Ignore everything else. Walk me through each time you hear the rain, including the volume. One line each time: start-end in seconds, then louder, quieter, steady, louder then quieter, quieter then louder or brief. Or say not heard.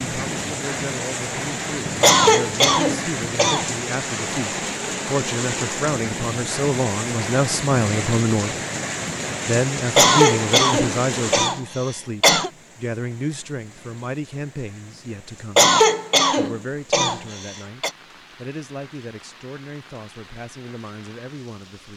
0.0-21.9 quieter.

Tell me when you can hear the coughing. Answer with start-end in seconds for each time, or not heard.
2.0-3.7, 9.9-12.5, 15.6-17.9.